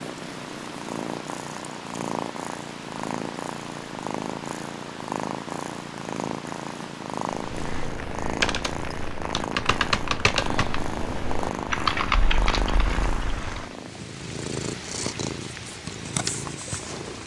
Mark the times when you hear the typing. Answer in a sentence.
You can hear the typing from 7.5 to 13.8 s.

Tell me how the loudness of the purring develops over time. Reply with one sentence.
The loudness of the purring stays about the same.